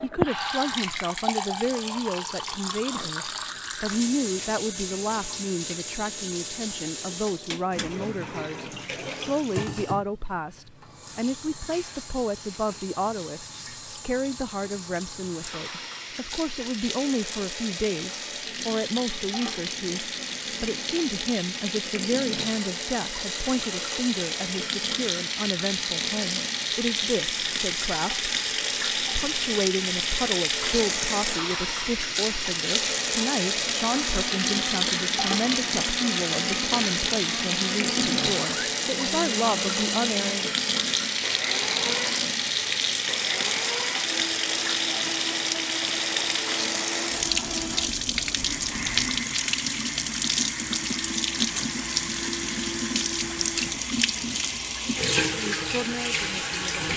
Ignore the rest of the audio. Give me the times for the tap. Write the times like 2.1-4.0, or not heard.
0.0-56.9.